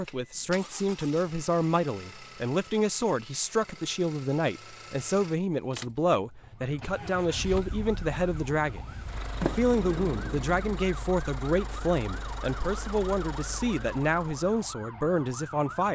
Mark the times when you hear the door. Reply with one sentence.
The door can be heard from 9.4 to 10.8 s.